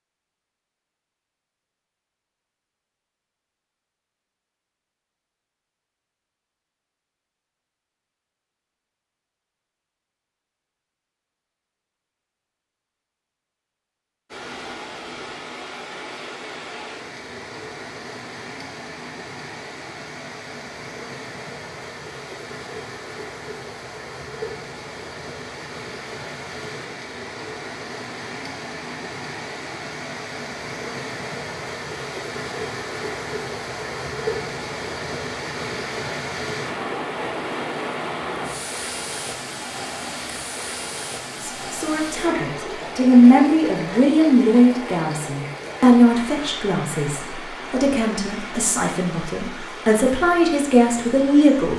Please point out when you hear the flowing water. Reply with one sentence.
The flowing water can be heard from 14.2 to 51.7 s.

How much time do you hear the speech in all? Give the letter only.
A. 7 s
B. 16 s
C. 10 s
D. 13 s
C.